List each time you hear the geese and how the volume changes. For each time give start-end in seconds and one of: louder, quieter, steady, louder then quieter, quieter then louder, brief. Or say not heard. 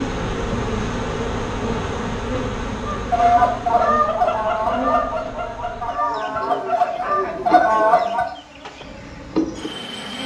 2.9-8.2 quieter then louder.